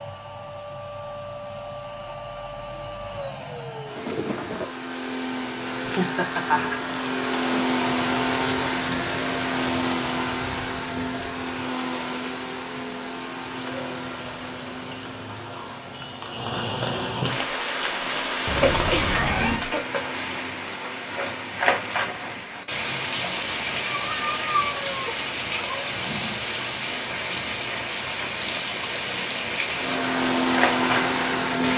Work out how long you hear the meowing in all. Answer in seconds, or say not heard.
4 s.